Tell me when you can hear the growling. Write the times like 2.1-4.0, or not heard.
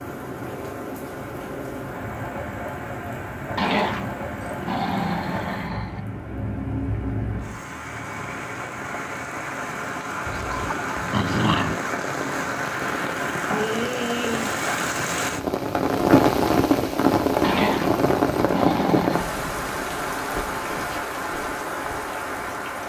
3.5-6.0, 10.2-11.8, 17.4-19.2.